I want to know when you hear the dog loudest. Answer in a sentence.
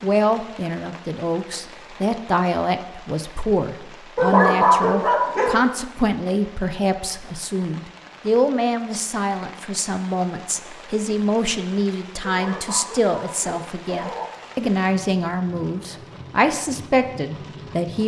The loudest moment of the dog is at 5 seconds.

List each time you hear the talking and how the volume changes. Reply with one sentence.
You can hear the talking from 0.0 to 18.0 s, at a steady volume.